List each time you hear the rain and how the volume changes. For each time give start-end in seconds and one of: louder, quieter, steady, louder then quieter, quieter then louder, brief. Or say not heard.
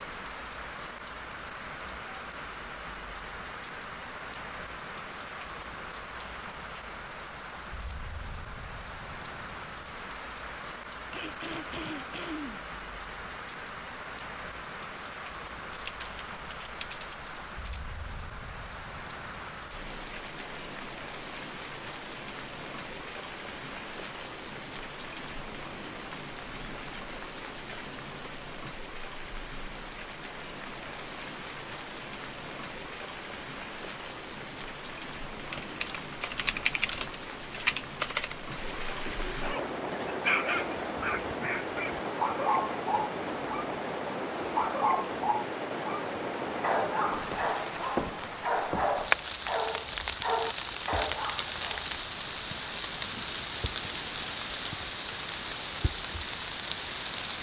0.0-57.3 louder.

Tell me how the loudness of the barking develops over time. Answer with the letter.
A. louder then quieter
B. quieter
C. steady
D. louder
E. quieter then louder
C.